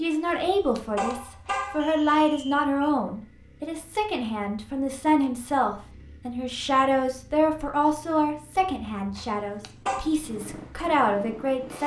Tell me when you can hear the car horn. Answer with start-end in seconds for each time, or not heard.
0.2-1.9, 9.2-10.1.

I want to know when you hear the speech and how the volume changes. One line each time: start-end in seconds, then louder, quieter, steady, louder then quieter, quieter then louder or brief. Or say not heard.
0.0-11.8 steady.